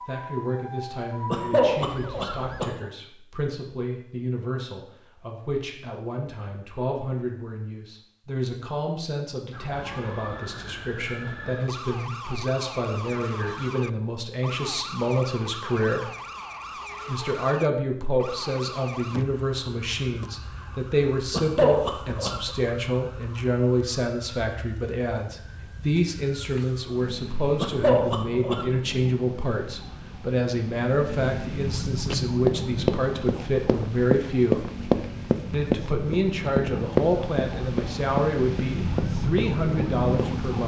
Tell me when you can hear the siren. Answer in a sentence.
The siren can be heard from 0.0 to 2.6 s and from 9.5 to 40.6 s.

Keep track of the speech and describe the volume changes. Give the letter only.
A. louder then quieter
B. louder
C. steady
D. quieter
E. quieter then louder
B.